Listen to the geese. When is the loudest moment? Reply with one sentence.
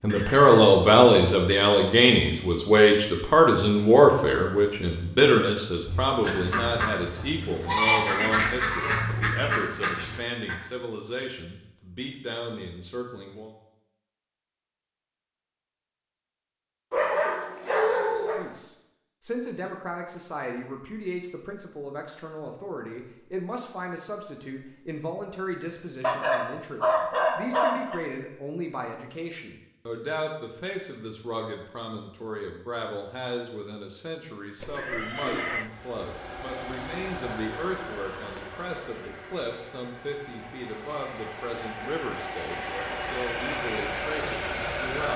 The loudest moment of the geese is at 8 seconds.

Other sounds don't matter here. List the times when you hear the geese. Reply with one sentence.
The geese can be heard from 5.8 to 10.6 s.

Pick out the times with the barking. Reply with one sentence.
The barking can be heard from 16.9 to 18.4 s and from 26.0 to 28.0 s.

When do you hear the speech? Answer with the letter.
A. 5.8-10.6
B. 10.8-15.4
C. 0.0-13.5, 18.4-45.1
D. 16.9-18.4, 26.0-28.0
C.